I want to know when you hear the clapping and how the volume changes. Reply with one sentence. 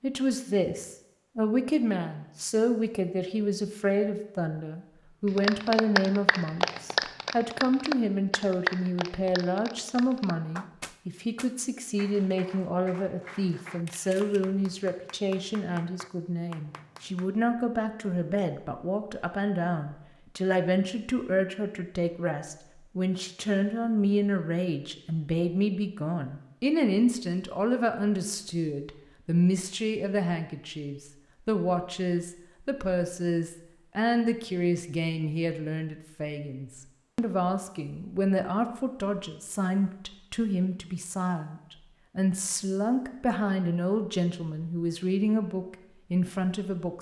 The clapping can be heard from 5.3 to 17.2 s, getting quieter.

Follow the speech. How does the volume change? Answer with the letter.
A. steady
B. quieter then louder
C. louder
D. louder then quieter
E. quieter
A.